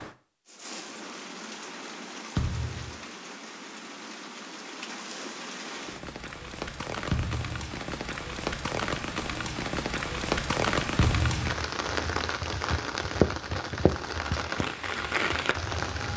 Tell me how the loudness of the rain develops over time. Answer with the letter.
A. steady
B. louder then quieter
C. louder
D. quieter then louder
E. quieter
C.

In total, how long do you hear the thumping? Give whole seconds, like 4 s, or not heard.
2 s.